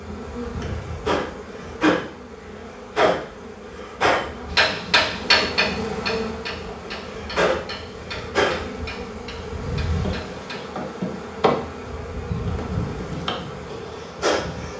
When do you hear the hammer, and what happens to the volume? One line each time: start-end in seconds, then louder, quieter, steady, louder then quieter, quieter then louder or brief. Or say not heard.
4.5-10.7 quieter.